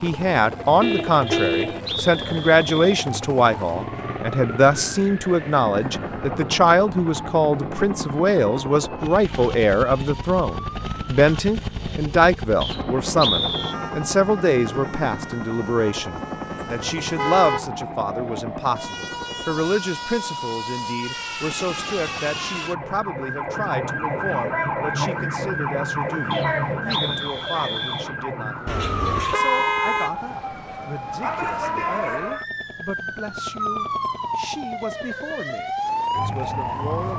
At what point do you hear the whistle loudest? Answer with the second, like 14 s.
13 s.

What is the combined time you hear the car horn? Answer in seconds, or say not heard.
3 s.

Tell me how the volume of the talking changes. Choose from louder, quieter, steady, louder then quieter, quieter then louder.
quieter.